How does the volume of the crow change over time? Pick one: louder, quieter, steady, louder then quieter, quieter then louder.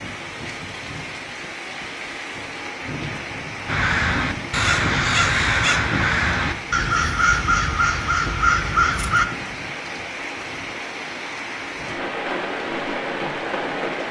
steady.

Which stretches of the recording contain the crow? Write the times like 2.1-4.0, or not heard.
3.6-9.2.